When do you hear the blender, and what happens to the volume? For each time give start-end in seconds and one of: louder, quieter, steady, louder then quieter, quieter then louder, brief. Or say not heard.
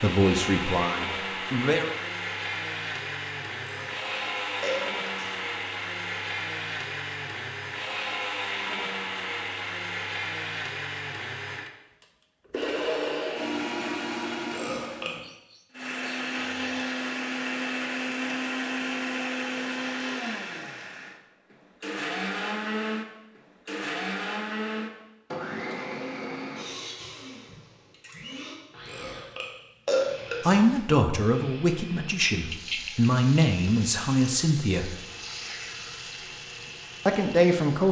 0.0-37.8 quieter.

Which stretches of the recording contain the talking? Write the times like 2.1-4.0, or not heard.
0.0-1.9, 30.4-35.0, 37.0-37.8.